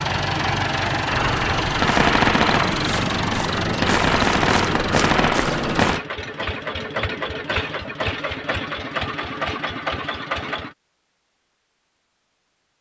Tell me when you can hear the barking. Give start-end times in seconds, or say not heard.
not heard.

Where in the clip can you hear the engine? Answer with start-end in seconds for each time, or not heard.
0.0-10.8.